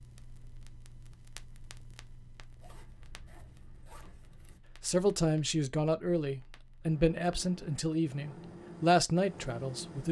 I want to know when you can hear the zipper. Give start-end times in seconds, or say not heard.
2.5-4.6.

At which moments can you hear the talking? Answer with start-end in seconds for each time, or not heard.
4.8-10.0.